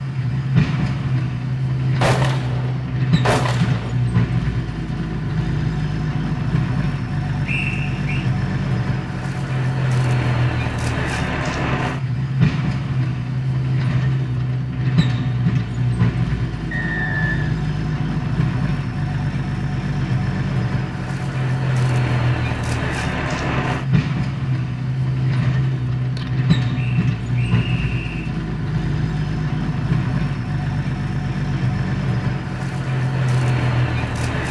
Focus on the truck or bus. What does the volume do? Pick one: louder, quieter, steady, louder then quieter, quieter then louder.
steady.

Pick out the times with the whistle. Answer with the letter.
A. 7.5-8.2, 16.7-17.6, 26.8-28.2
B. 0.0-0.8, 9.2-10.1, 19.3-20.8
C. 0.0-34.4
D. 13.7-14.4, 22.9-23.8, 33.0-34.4
A.